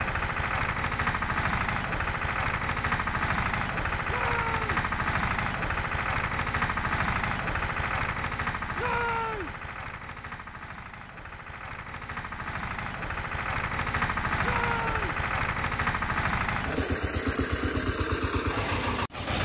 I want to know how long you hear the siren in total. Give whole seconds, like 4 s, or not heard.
not heard.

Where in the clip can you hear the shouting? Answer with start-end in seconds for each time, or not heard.
4.0-4.7, 8.8-9.6, 14.4-15.1.